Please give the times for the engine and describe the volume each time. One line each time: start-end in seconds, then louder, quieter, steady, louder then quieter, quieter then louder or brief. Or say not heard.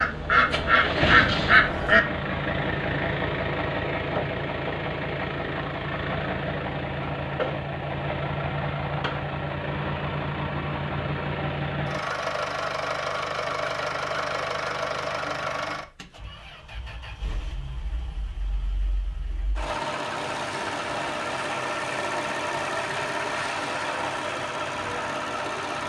0.0-25.8 quieter then louder.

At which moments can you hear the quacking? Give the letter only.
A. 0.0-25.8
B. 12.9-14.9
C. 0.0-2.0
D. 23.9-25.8
C.